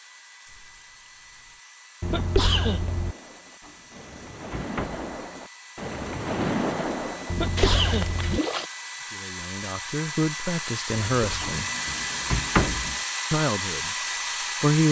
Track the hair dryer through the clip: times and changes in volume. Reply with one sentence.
The hair dryer can be heard from 0.0 to 14.8 s, getting louder.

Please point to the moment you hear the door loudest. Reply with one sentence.
The loudest moment of the door is at 12 seconds.